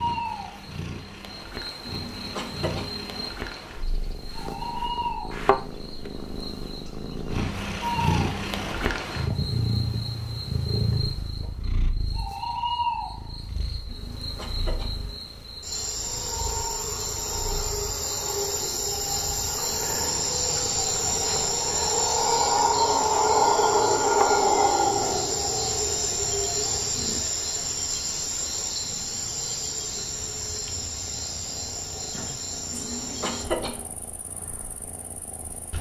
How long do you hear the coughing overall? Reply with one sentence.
The coughing can be heard for 4 seconds in total.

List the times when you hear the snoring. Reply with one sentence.
The snoring can't be heard in this clip.